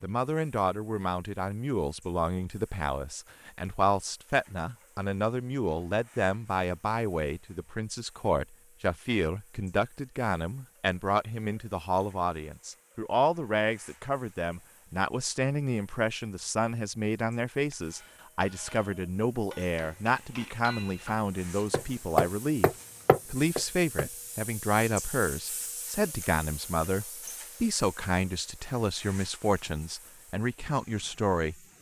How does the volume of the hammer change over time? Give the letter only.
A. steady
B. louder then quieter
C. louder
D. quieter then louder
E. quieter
C.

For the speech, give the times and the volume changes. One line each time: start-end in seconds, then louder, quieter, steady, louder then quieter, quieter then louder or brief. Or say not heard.
0.0-31.6 steady.